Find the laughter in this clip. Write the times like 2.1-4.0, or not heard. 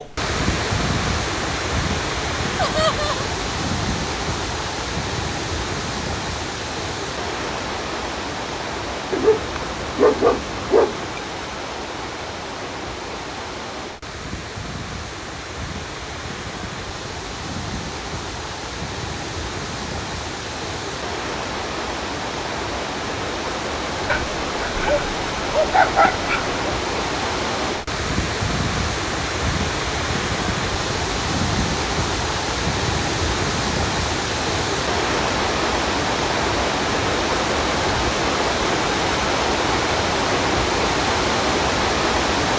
2.5-3.3.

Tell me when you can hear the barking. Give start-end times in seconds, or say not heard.
9.1-11.2, 24.1-26.6.